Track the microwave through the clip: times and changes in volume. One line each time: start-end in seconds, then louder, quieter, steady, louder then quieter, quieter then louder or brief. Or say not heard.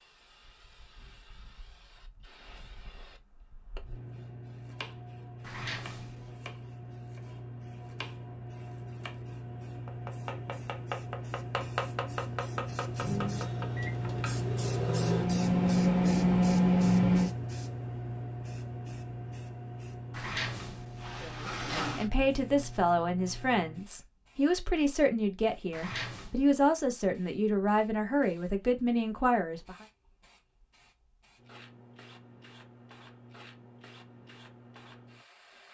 13.0-17.3 louder.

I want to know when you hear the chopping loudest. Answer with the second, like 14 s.
12 s.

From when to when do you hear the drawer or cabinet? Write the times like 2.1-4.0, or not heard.
5.4-6.3, 20.1-22.1, 25.7-26.4.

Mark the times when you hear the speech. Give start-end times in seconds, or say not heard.
21.2-29.8.